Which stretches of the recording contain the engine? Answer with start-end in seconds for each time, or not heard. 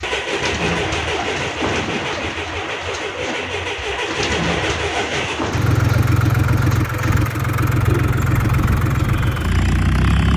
0.0-10.3.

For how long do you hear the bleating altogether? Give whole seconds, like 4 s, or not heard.
not heard.